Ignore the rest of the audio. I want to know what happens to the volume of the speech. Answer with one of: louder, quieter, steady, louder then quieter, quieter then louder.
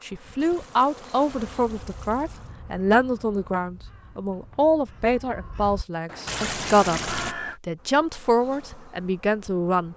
steady.